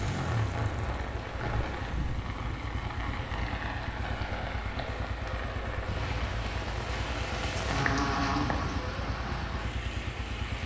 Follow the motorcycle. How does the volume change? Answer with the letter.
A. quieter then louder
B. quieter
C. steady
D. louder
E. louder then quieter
C.